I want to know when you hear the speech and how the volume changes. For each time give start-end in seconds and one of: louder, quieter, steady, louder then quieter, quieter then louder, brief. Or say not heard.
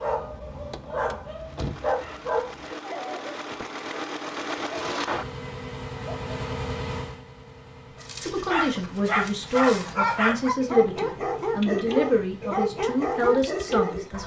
8.2-14.2 steady.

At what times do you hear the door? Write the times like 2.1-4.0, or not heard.
0.7-1.9.